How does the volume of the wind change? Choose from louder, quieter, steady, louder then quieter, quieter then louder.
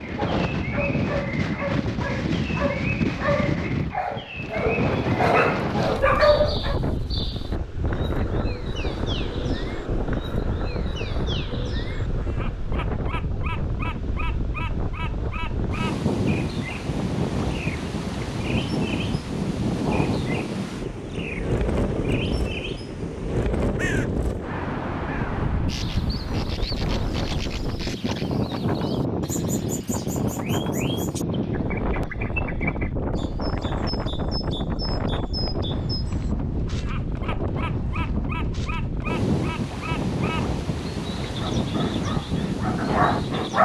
steady.